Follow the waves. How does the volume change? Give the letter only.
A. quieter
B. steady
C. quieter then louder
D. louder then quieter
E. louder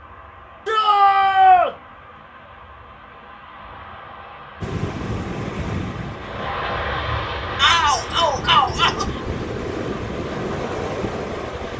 C.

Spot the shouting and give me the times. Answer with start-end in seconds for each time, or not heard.
0.7-1.8, 7.5-9.1.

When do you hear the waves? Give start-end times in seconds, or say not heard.
4.6-11.7.